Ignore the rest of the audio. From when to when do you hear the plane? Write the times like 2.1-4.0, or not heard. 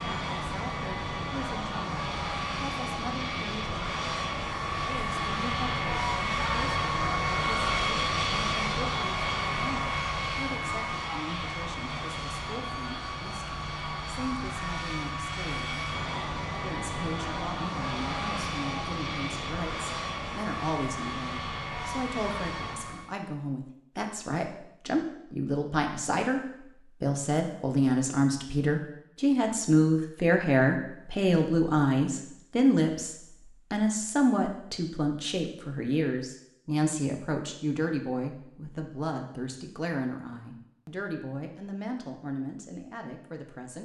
0.0-23.1.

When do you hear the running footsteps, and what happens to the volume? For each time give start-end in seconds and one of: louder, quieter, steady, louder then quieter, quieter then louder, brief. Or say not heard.
not heard.